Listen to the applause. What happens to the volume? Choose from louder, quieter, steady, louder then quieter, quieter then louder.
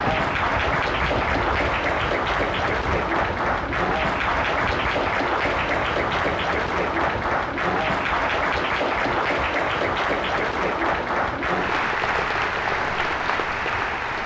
steady.